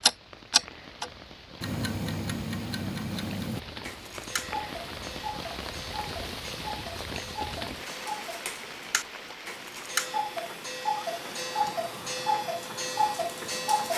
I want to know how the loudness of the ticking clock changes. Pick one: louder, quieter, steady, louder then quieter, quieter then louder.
quieter then louder.